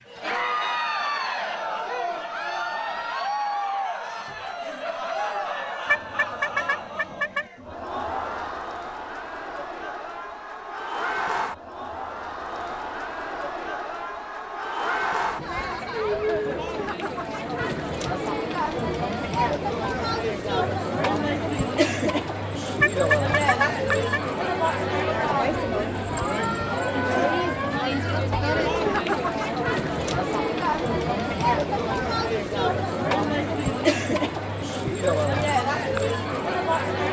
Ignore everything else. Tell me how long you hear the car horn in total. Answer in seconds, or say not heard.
3 s.